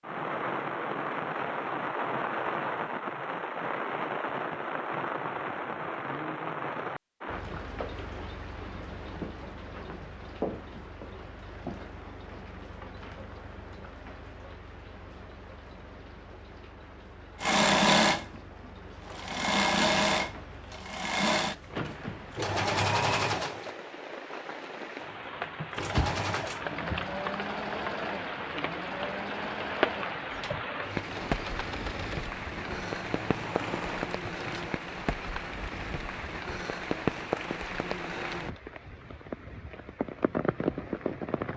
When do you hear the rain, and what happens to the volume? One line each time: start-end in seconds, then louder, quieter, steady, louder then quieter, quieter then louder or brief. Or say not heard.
0.0-41.5 quieter then louder.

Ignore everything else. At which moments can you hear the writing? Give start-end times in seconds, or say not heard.
not heard.